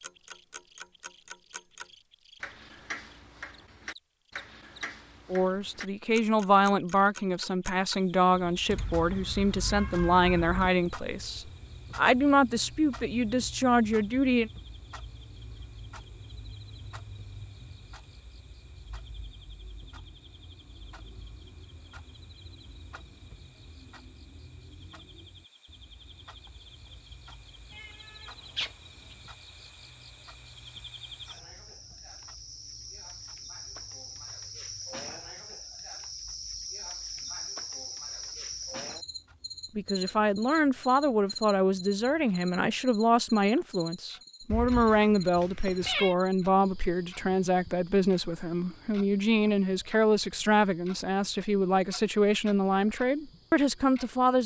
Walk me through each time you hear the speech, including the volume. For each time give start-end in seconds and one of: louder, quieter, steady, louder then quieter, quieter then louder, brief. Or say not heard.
5.3-14.5 steady
39.8-54.4 steady.